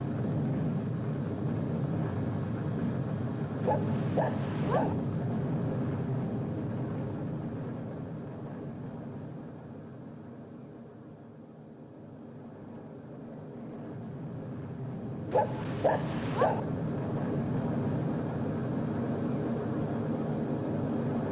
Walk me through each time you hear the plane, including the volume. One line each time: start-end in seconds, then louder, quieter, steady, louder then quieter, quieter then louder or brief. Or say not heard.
0.0-21.2 quieter then louder.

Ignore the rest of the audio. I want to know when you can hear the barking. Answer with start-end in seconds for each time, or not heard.
3.6-5.0, 15.3-16.6.